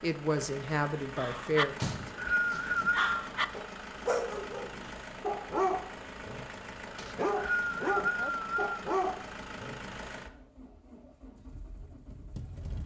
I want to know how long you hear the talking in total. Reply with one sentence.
You can hear the talking for 2 seconds altogether.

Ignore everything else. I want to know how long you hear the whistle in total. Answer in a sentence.
You can hear the whistle for 3 seconds altogether.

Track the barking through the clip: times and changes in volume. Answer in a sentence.
The barking can be heard from 1.1 to 9.9 s, at a steady volume.